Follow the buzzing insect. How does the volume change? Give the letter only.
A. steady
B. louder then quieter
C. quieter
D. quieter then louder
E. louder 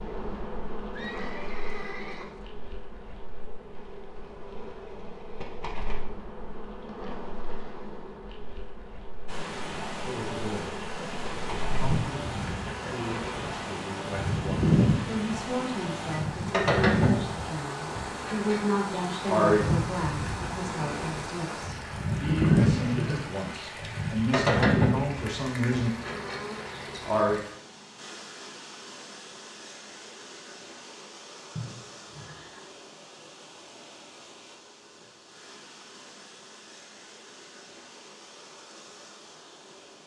E.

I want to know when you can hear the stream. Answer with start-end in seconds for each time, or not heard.
9.2-40.0.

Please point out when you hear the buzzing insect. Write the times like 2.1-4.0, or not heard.
0.0-27.4.